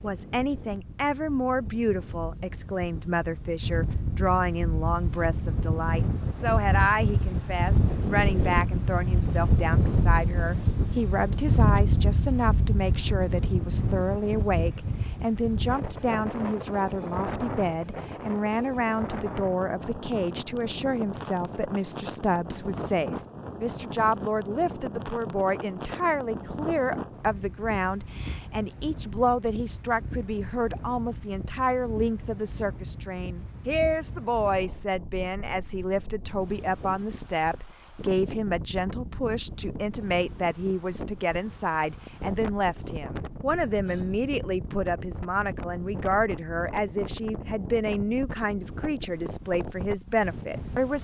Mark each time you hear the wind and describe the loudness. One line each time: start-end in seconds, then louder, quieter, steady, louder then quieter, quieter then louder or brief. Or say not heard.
0.0-50.9 quieter.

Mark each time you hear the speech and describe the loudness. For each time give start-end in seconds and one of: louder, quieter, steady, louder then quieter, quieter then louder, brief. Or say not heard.
0.0-50.9 steady.